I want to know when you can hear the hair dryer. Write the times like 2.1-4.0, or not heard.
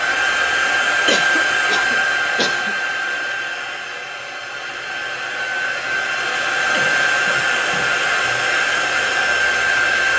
0.0-10.1.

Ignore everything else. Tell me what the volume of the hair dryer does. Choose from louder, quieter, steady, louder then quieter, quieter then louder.
quieter then louder.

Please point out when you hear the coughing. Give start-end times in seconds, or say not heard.
1.1-2.8, 6.7-8.4.